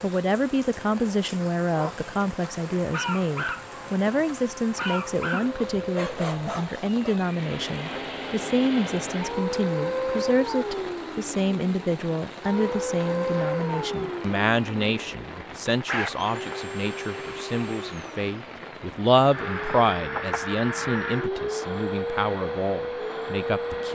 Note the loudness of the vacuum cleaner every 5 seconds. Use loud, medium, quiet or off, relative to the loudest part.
quiet, loud, loud, medium, loud.